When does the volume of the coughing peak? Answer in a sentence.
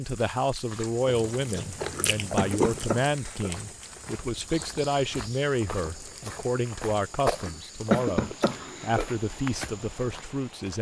The volume of the coughing peaks at 8 seconds.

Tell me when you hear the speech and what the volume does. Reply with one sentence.
You can hear the speech from 0.0 to 10.7 s, at a steady volume.